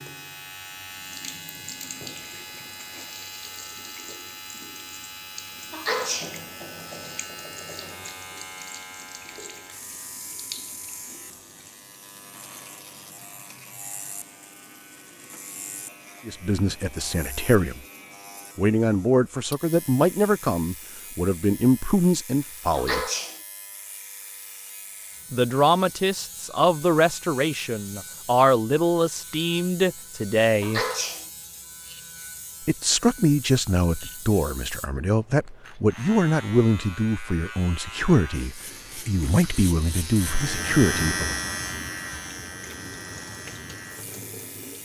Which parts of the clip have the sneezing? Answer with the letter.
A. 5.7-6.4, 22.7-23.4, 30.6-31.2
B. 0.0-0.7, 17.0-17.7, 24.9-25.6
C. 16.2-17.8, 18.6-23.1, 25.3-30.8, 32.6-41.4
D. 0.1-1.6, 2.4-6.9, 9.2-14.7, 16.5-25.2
A.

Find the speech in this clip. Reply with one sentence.
The speech can be heard from 16.2 to 17.8 s, from 18.6 to 23.1 s, from 25.3 to 30.8 s and from 32.6 to 41.4 s.